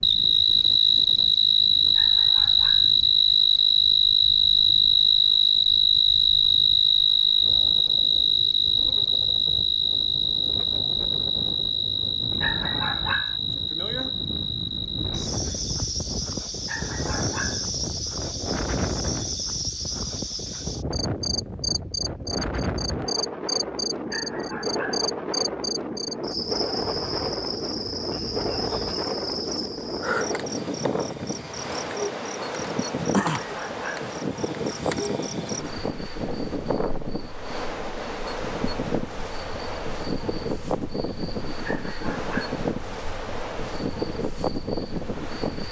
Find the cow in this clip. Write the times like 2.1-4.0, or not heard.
not heard.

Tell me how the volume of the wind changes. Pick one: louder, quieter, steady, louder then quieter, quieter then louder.
louder.